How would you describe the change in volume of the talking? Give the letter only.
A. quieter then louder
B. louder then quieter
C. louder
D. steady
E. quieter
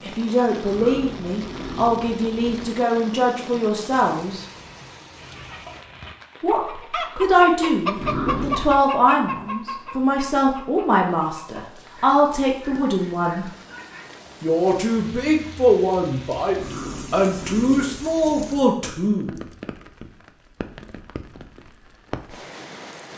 D.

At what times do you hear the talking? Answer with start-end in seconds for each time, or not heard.
0.0-4.5, 6.4-13.5, 14.4-19.4.